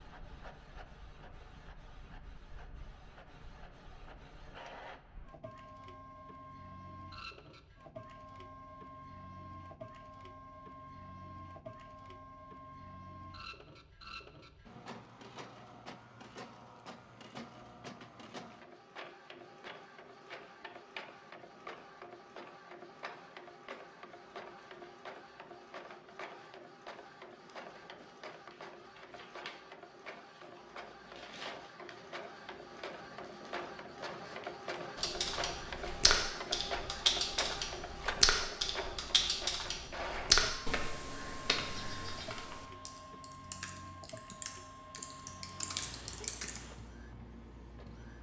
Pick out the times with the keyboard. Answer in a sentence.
You can hear the keyboard from 35.0 to 46.7 s.